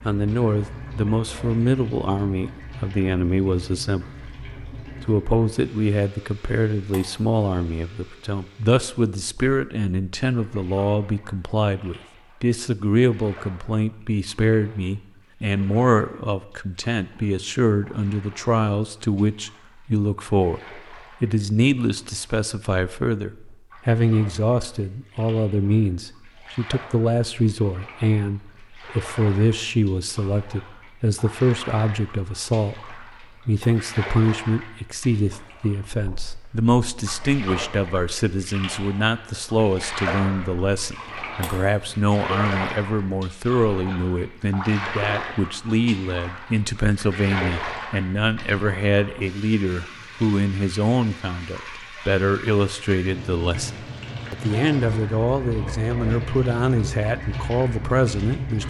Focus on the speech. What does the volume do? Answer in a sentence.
The volume of the speech stays about the same.